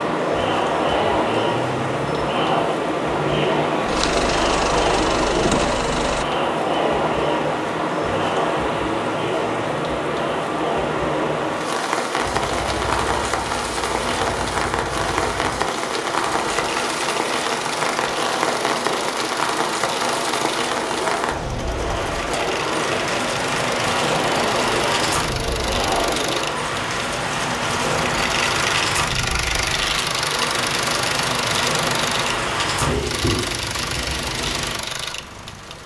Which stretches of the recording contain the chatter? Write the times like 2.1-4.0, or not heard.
0.0-26.6.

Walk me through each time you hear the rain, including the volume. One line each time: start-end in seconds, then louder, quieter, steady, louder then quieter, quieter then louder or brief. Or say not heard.
0.0-35.8 steady.